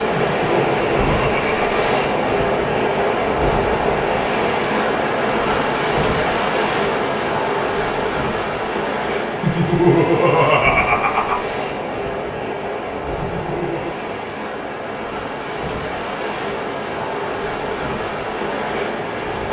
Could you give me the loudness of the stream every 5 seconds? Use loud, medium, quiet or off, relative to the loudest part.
loud, loud, medium, medium.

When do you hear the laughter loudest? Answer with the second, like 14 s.
10 s.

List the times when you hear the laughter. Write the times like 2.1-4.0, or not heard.
0.1-1.6, 9.4-11.4, 13.2-13.9.